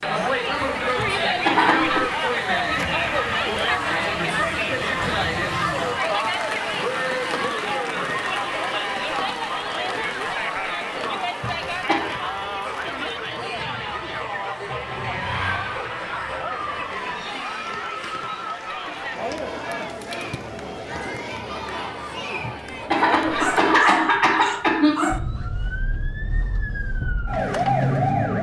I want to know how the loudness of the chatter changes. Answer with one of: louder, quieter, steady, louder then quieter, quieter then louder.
quieter.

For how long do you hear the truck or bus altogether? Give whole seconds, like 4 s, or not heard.
not heard.